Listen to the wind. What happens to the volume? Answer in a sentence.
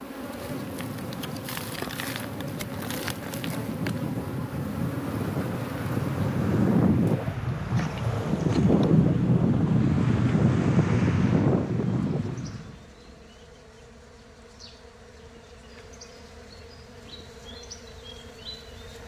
The volume of the wind goes up.